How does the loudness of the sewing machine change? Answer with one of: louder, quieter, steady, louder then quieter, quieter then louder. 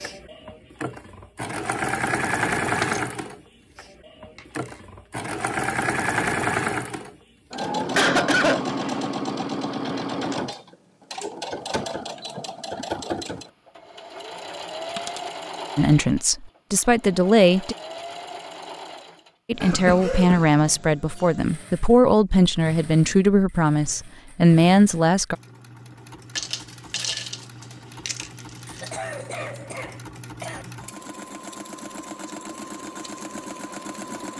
quieter then louder.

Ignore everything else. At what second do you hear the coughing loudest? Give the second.
8 s.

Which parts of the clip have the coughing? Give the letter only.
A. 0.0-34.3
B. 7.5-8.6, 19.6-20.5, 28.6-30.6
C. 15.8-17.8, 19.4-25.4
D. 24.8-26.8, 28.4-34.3
B.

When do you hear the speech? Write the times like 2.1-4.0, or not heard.
15.8-17.8, 19.4-25.4.